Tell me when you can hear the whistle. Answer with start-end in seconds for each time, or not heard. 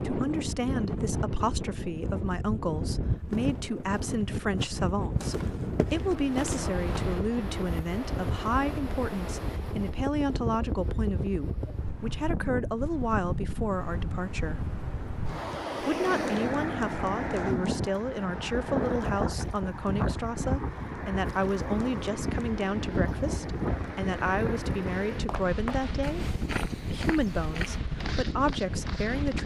not heard.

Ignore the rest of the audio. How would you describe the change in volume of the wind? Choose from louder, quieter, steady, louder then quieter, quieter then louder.
steady.